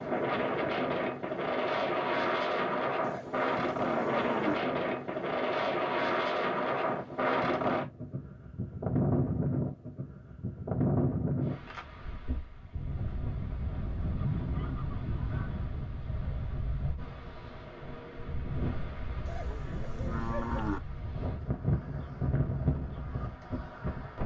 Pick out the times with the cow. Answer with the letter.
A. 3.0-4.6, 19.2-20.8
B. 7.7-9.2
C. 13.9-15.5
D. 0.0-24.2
A.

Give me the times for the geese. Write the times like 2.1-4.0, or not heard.
13.9-15.5.